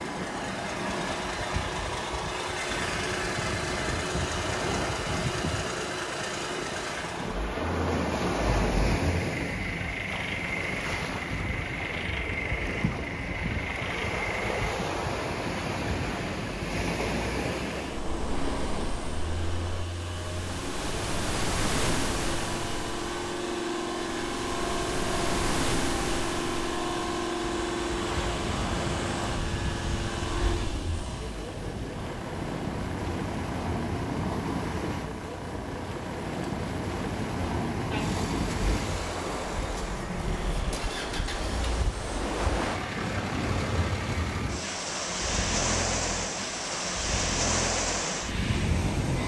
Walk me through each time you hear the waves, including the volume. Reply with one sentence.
You can hear the waves from 0.0 to 49.2 s, at a steady volume.